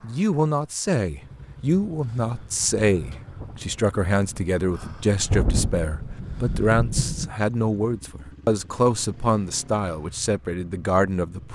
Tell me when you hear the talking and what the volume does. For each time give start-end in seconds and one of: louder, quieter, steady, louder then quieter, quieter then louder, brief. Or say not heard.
0.0-11.5 steady.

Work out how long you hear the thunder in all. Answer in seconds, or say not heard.
5 s.